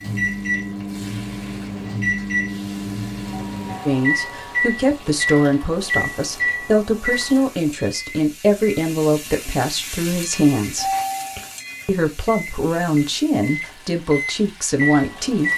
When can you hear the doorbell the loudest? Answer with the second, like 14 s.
11 s.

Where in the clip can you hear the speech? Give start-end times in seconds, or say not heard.
3.9-10.9, 11.8-15.5.